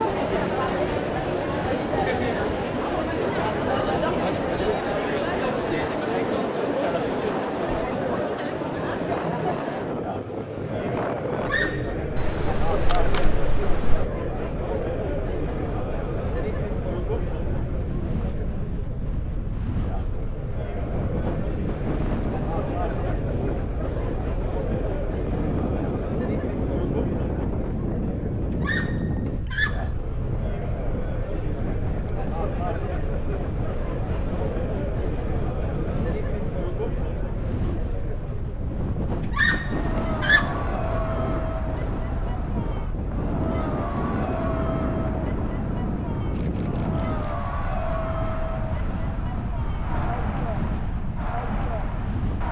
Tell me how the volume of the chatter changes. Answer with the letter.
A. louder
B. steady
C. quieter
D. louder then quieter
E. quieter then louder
C.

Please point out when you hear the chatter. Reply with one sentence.
The chatter can be heard from 0.0 to 52.4 s.